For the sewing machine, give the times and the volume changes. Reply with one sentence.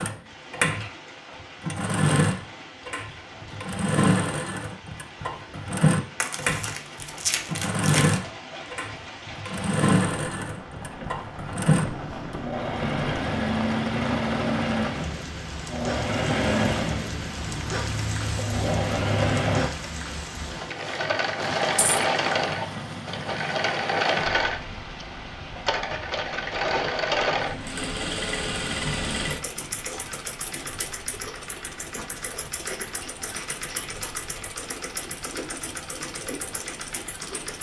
The sewing machine can be heard from 0.0 to 37.5 s, getting quieter.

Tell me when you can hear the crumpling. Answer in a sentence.
You can hear the crumpling from 6.2 to 8.2 s.